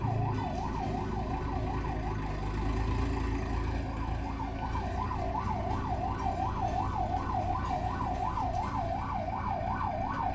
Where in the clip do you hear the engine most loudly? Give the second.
3 s.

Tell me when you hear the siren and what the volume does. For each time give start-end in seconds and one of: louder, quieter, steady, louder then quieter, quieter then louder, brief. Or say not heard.
0.0-10.2 quieter then louder.